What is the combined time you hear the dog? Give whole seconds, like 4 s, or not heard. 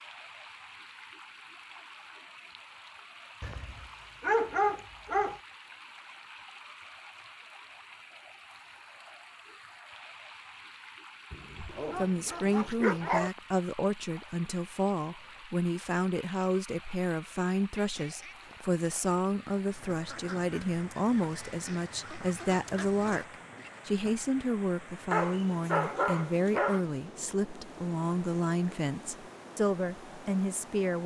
6 s.